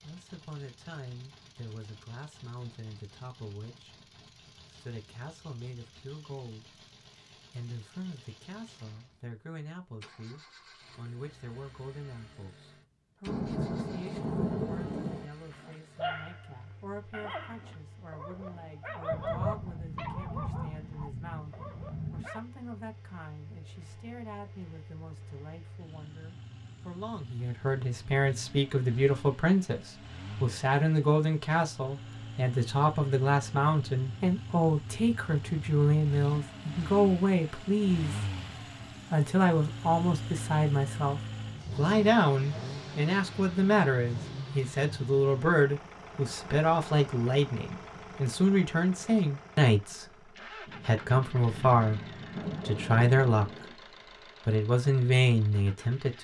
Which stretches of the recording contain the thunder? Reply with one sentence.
You can hear the thunder from 13.2 to 15.2 s, from 19.1 to 22.3 s and from 50.6 to 53.8 s.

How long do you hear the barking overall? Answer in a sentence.
The barking can be heard for 7 seconds in total.